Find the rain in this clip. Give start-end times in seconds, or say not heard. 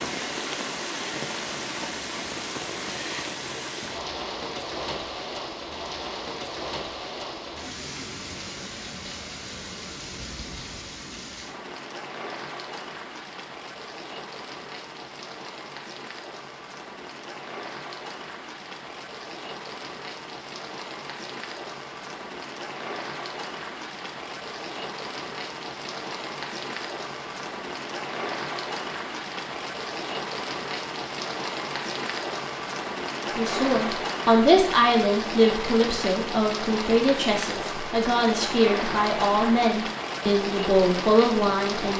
0.0-41.9.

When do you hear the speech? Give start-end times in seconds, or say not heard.
33.4-41.9.